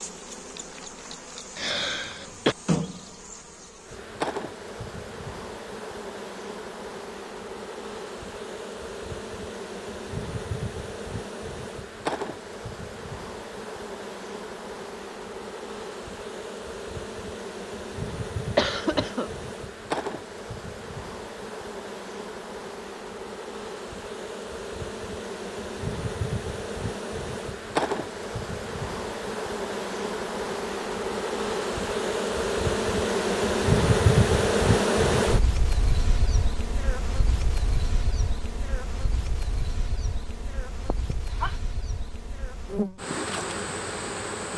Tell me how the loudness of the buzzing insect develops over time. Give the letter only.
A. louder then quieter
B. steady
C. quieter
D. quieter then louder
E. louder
A.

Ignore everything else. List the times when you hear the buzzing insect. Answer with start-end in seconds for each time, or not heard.
0.0-44.5.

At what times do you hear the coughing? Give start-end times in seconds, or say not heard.
1.6-2.5, 18.6-19.3, 41.1-41.6.